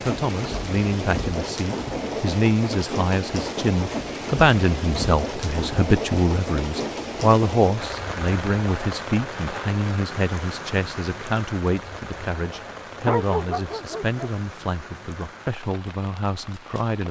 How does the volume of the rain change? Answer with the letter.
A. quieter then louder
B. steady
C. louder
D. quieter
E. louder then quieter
D.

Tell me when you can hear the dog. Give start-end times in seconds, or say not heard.
12.3-14.3.